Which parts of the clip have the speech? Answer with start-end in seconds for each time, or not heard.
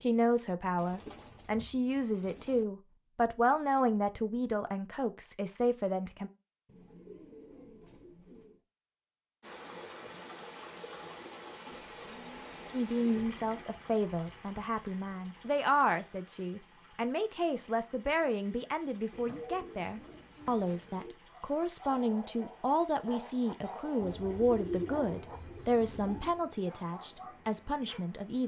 0.0-6.3, 12.7-28.4.